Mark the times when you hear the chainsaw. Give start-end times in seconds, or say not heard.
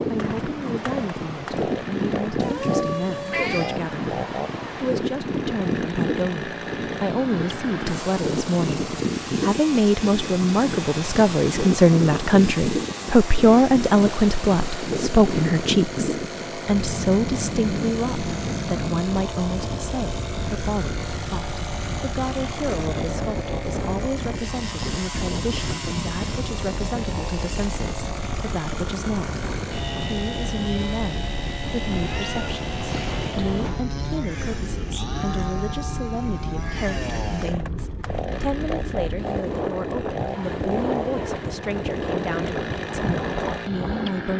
0.0-44.3.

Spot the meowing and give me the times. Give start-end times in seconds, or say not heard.
2.4-3.8, 31.9-33.8.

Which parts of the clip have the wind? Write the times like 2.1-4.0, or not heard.
0.0-44.3.